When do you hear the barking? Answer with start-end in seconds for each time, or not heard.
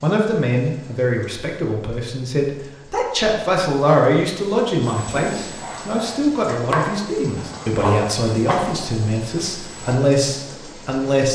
5.0-10.0.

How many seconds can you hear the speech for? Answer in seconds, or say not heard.
11 s.